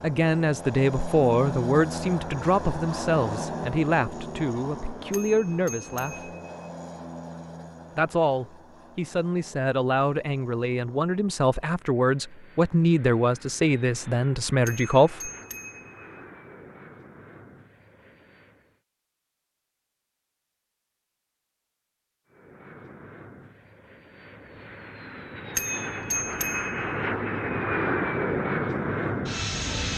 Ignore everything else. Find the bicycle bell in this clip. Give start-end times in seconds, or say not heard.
5.1-6.5, 14.7-16.0, 25.6-26.9.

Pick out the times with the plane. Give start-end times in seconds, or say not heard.
0.0-18.8, 22.3-29.9.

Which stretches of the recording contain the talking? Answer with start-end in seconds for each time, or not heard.
0.0-6.3, 8.0-15.3.